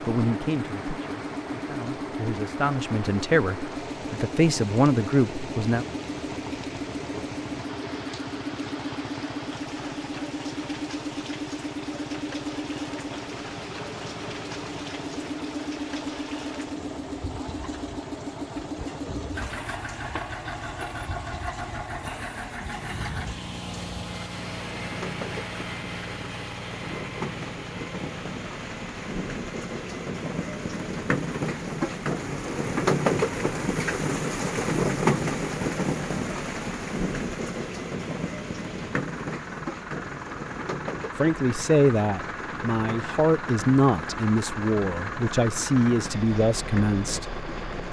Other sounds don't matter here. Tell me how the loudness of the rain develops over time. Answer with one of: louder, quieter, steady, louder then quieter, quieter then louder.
louder then quieter.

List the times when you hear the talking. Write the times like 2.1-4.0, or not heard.
0.1-5.8, 41.1-47.8.